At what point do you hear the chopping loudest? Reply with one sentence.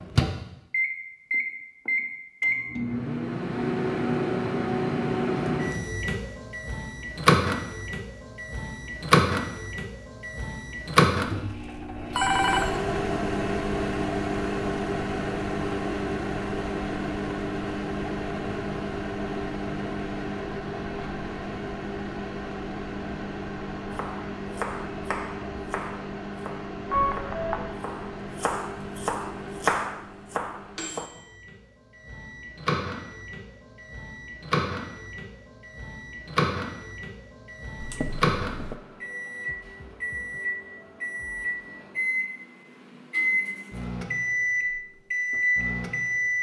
The volume of the chopping peaks at 30 seconds.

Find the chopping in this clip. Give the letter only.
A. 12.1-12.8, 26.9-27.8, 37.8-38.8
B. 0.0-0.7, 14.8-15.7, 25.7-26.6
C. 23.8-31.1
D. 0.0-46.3
C.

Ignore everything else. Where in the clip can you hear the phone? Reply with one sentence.
The phone can be heard from 12.1 to 12.8 s, from 26.9 to 27.8 s and from 37.8 to 38.8 s.